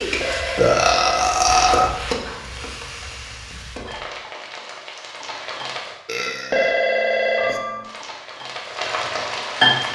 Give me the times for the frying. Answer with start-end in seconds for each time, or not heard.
0.0-6.0, 7.8-9.9.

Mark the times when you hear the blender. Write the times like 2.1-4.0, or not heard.
not heard.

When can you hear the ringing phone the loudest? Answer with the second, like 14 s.
7 s.